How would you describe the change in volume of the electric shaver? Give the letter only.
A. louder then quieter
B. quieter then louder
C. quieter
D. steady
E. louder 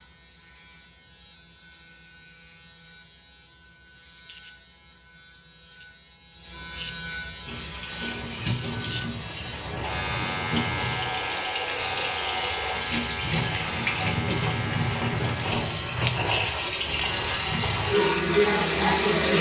E.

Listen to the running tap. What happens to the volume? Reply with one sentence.
The loudness of the running tap goes up.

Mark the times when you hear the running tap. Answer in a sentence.
You can hear the running tap from 7.5 to 19.3 s.